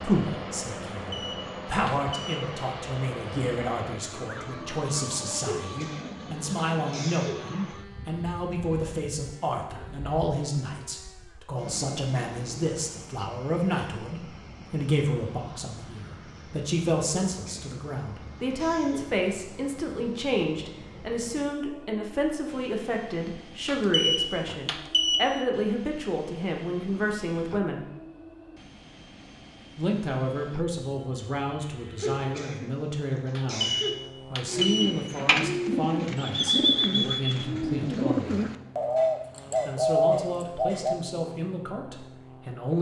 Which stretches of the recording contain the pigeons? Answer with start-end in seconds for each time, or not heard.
34.5-41.0.